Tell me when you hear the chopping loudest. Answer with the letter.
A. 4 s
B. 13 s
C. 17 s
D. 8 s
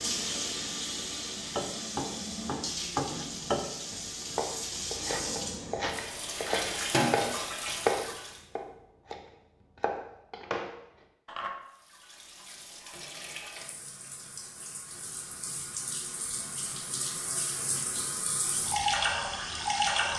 D.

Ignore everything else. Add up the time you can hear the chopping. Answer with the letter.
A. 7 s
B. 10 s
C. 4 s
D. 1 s
B.